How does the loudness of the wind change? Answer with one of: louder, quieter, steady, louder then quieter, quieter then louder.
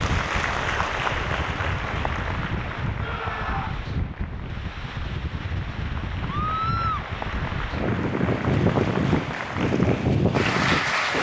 louder.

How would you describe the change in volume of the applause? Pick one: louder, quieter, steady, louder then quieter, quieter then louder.
quieter then louder.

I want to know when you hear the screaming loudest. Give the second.
7 s.